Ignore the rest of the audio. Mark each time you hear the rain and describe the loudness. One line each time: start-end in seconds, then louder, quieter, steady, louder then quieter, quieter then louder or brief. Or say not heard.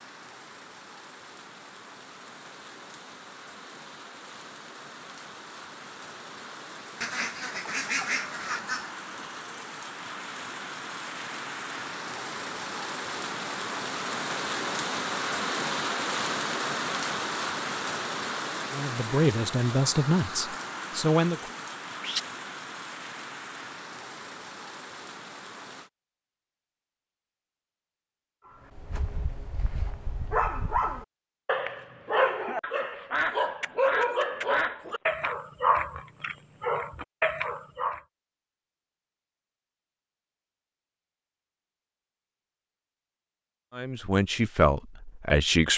0.0-25.9 louder then quieter.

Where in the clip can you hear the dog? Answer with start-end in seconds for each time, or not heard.
28.8-38.0.